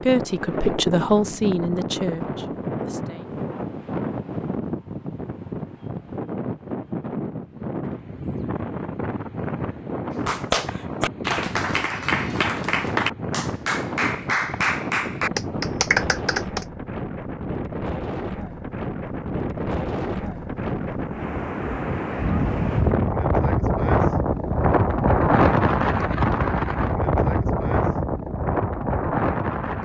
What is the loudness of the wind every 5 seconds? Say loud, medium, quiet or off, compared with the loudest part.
medium, medium, medium, medium, loud, loud.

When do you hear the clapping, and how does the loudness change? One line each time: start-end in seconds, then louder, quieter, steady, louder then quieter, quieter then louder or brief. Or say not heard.
10.1-16.6 steady.